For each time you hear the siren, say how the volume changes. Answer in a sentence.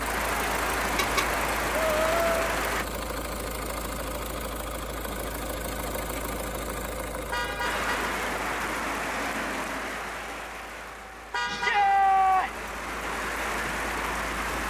You can't hear the siren here.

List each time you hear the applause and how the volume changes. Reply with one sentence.
You can hear the applause briefly from 0.0 to 2.9 s; and from 7.6 to 14.6 s, getting quieter then louder.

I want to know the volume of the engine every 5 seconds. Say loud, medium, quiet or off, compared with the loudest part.
loud, loud, medium.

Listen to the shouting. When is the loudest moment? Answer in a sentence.
The loudest moment of the shouting is at 12 seconds.